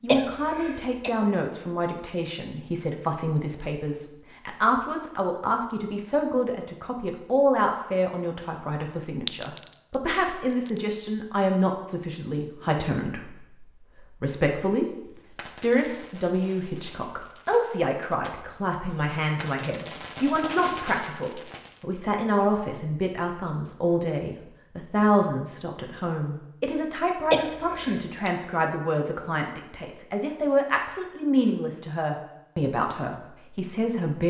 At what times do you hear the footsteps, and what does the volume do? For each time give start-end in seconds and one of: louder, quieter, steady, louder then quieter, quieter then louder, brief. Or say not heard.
not heard.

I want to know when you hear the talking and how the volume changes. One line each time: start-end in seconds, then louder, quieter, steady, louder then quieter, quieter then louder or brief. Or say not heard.
0.0-34.2 steady.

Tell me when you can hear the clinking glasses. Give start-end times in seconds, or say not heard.
9.2-10.8.